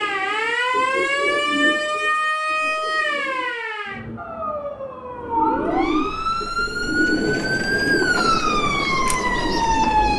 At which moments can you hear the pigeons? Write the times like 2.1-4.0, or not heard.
0.0-3.5, 5.2-10.1.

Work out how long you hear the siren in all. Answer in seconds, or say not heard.
10 s.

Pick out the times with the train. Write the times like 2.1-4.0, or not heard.
6.7-10.1.